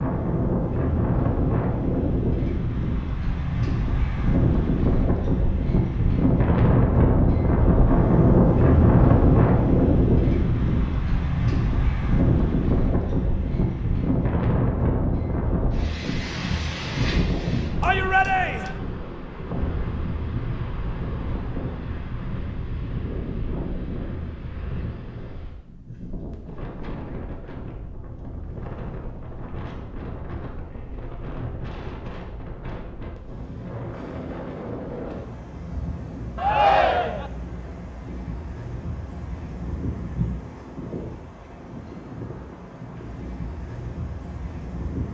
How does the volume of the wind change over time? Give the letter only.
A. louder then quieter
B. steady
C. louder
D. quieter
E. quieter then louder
D.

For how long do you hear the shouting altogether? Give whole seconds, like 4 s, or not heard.
2 s.